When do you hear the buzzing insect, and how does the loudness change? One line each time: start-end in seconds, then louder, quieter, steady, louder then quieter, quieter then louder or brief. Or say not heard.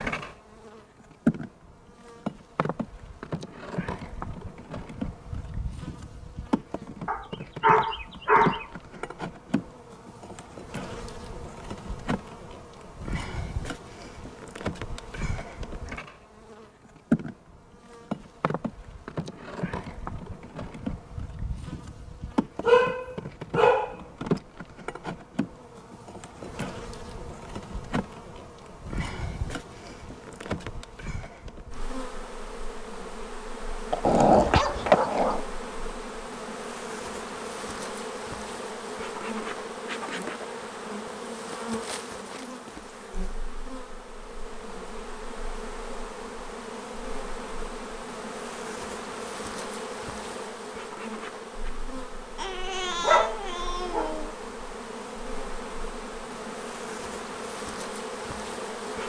0.0-59.0 steady.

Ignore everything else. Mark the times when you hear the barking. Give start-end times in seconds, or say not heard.
7.0-8.7, 22.6-24.0, 33.9-35.4, 52.4-54.3.